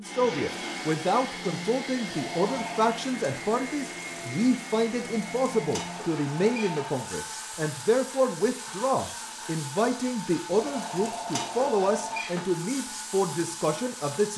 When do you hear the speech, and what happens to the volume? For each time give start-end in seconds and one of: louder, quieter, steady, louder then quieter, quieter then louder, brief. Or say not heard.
0.0-14.3 steady.